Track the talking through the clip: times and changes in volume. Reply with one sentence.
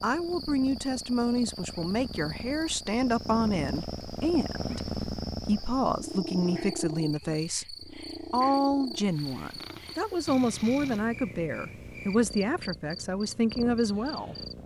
The talking can be heard from 0.0 to 14.3 s, at a steady volume.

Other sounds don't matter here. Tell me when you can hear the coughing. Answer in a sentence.
The coughing can't be heard in this clip.